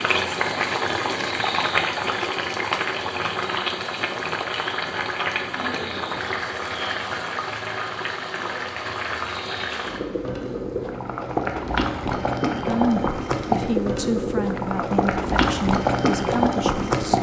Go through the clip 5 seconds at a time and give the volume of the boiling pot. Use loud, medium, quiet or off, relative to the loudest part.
loud, medium, loud, loud.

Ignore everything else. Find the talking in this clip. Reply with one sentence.
The talking can be heard from 12.6 to 17.1 s.